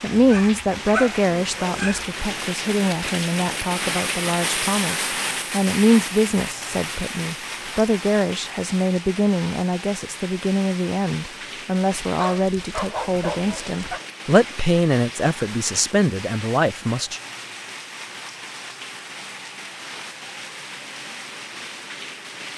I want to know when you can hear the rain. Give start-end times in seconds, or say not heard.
0.0-22.5.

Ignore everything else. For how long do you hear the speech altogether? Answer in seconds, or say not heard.
17 s.